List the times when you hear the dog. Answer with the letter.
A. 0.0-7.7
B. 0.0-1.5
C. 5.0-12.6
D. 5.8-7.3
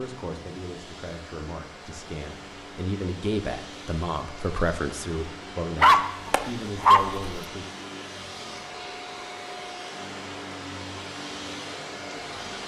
D.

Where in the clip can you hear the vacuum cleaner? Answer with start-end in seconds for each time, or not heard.
0.0-12.6.